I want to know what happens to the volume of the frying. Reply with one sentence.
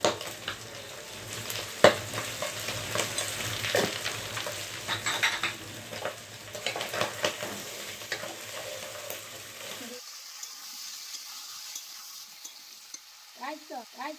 The loudness of the frying goes down.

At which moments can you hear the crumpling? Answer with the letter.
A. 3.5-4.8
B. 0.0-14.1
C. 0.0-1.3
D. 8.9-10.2
A.